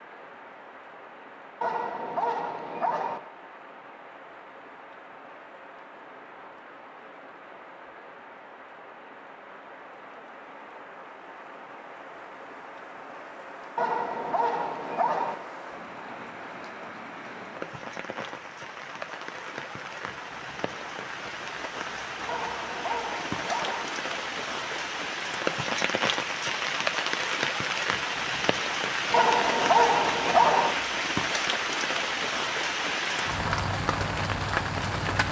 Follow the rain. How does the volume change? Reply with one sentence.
The volume of the rain goes up.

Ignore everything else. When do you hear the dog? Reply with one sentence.
The dog can be heard from 1.6 to 3.2 s, from 13.8 to 15.3 s, from 22.2 to 23.9 s and from 29.1 to 30.8 s.